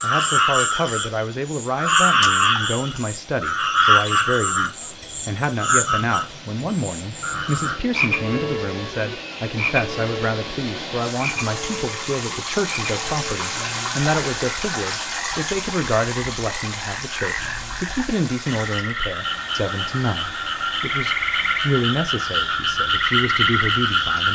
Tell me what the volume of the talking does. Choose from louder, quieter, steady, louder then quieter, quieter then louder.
steady.